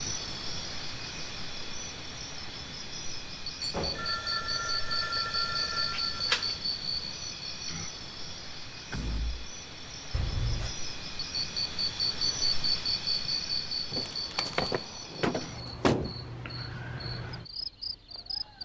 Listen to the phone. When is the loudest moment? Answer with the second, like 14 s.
6 s.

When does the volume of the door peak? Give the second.
16 s.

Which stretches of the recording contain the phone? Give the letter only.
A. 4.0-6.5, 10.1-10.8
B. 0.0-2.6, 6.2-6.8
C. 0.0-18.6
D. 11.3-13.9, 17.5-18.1
A.